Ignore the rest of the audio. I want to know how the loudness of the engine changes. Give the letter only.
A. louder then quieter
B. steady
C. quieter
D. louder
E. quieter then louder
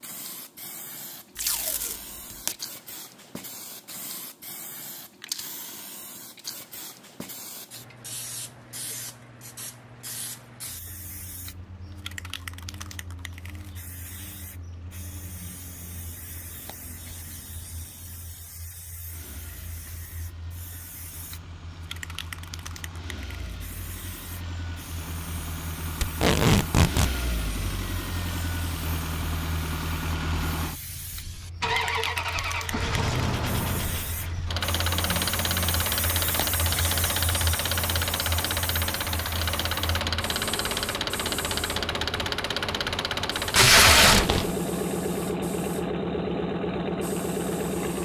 D.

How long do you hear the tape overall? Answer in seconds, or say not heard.
3 s.